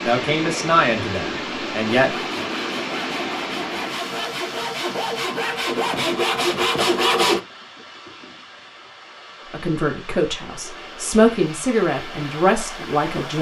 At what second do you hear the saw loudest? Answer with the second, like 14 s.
7 s.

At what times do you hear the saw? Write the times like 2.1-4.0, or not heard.
2.0-7.4.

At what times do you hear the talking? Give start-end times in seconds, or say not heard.
0.0-2.1, 9.5-13.3.